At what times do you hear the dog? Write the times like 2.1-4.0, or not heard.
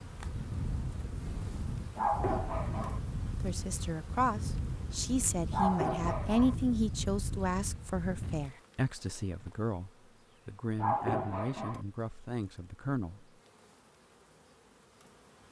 1.9-3.0, 5.5-6.5, 10.8-11.8.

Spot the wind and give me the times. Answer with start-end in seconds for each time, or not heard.
0.0-8.6.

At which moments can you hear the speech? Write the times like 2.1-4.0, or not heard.
3.4-13.3.